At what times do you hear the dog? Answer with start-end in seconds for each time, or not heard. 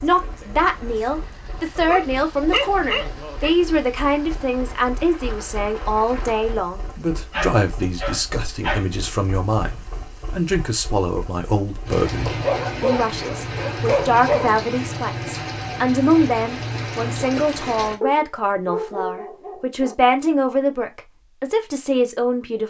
1.8-3.5, 7.3-8.8, 12.2-14.7, 18.0-19.9.